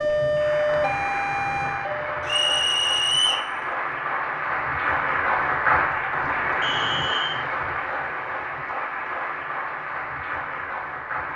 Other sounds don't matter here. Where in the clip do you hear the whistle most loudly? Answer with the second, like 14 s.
3 s.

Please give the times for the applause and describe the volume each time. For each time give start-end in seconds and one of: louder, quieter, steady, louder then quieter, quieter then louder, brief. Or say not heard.
0.0-11.3 louder then quieter.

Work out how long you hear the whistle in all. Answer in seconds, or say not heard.
2 s.